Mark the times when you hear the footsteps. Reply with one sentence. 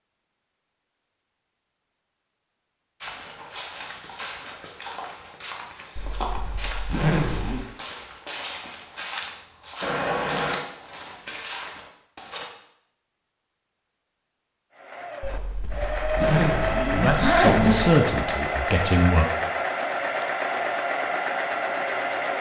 The footsteps can be heard from 3.0 to 12.4 s.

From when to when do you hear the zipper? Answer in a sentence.
You can hear the zipper from 6.0 to 7.7 s and from 15.2 to 18.0 s.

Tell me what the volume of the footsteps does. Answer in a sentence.
The volume of the footsteps stays about the same.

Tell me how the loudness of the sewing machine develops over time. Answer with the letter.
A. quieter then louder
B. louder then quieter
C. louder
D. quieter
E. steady
E.